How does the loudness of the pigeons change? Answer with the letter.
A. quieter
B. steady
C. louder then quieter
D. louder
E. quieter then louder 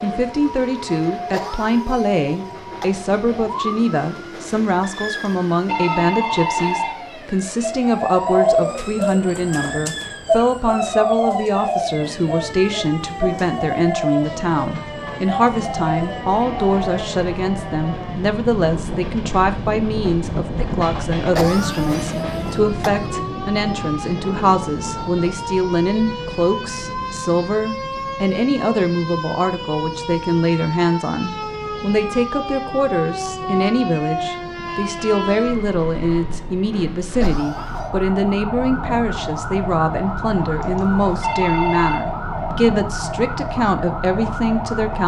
A.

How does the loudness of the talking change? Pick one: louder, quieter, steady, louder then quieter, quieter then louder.
steady.